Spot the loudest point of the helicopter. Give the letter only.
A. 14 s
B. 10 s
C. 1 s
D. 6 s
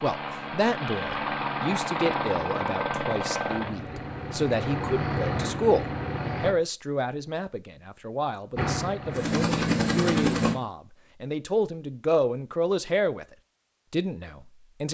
B.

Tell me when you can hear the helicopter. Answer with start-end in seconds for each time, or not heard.
0.0-6.5, 8.6-10.6.